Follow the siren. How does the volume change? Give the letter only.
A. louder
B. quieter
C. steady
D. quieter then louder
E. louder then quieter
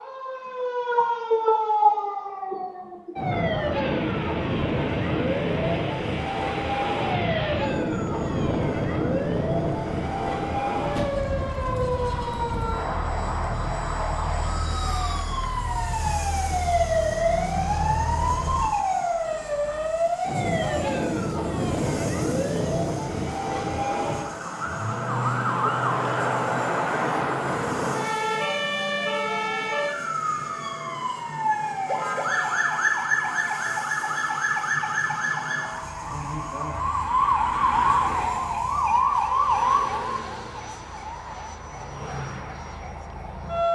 C.